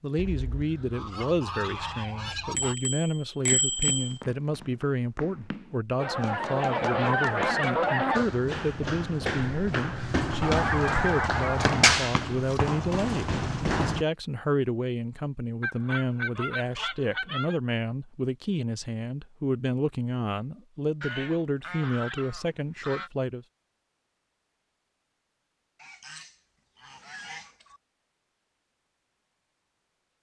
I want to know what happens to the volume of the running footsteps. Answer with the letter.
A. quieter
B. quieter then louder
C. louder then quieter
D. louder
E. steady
D.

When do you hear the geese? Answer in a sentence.
The geese can be heard from 0.1 to 2.8 s, from 6.0 to 8.2 s, from 10.4 to 12.0 s, from 15.6 to 17.6 s, from 21.0 to 23.1 s and from 25.8 to 27.8 s.